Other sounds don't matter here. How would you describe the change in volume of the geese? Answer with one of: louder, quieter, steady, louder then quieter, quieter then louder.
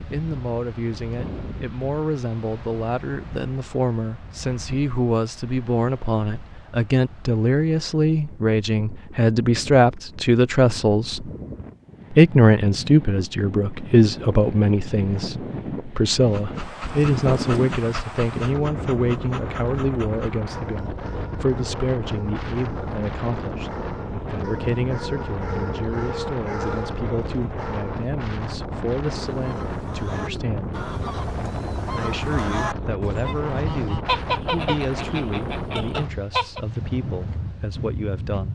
louder then quieter.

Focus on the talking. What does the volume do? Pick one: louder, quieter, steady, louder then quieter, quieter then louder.
louder then quieter.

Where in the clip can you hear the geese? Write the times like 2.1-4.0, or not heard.
29.2-36.6.